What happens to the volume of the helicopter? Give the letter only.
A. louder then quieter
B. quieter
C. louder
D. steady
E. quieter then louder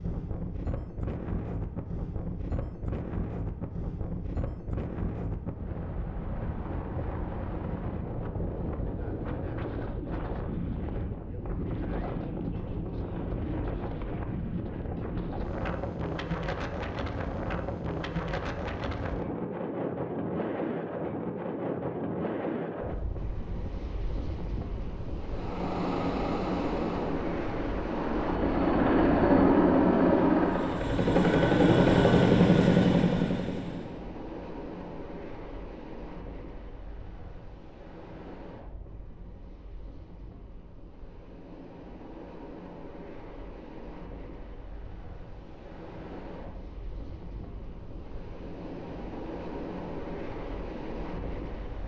C.